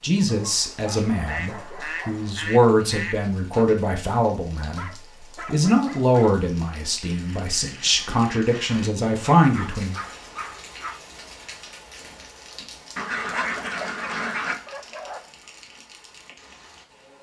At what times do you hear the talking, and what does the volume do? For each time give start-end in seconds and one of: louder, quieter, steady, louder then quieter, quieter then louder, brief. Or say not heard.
0.0-9.9 louder.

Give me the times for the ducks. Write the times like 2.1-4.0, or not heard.
1.1-3.6, 7.0-8.9, 12.9-14.6.